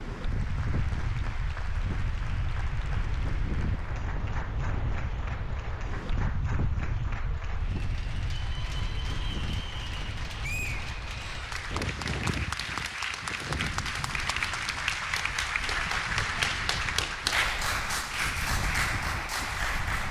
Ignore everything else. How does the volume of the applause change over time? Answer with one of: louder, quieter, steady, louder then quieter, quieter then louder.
louder.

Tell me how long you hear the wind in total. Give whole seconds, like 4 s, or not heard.
20 s.